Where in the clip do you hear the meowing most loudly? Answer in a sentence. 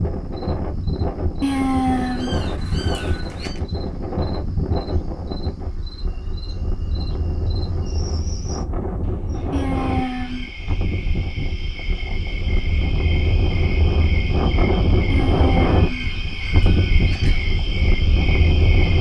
The volume of the meowing peaks at 2 seconds.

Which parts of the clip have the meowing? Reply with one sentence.
The meowing can be heard from 1.4 to 3.6 s, from 9.5 to 10.4 s and from 15.1 to 17.4 s.